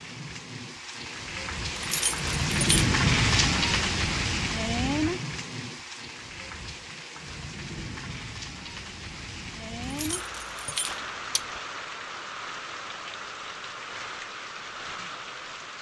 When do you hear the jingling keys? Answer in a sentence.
The jingling keys can be heard from 1.8 to 2.9 s and from 9.8 to 11.6 s.